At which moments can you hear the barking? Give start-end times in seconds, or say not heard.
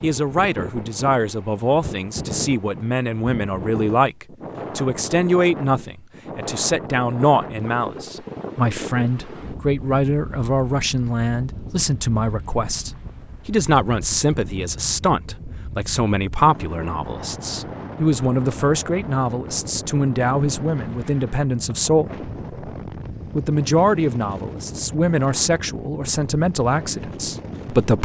not heard.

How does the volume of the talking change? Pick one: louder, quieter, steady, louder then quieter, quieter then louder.
steady.